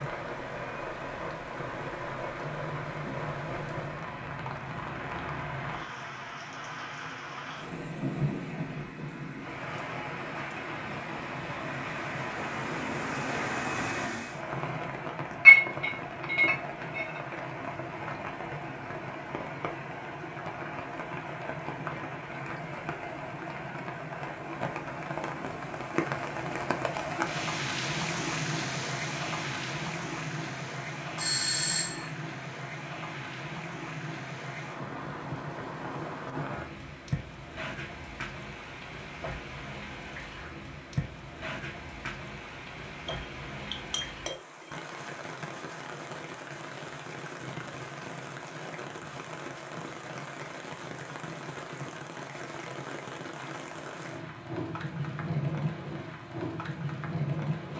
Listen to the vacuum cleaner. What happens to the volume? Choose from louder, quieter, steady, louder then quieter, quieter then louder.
louder.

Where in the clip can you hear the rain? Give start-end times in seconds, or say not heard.
0.0-57.7.